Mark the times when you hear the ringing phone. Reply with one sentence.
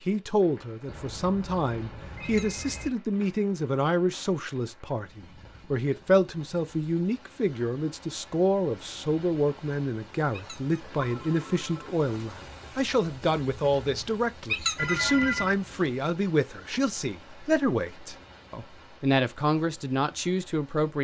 The ringing phone can be heard from 0.8 to 2.9 s, from 11.0 to 11.9 s and from 14.8 to 15.6 s.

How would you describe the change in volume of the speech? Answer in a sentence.
The loudness of the speech stays about the same.